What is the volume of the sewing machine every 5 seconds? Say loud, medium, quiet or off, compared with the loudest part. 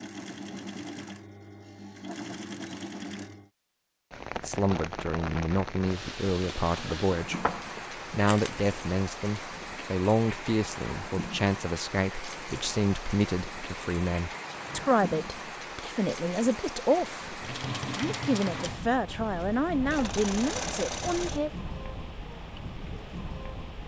medium, off, off, loud, loud.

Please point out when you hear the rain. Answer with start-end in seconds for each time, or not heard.
4.1-23.8.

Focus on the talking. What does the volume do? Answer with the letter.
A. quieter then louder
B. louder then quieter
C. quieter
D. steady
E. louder
D.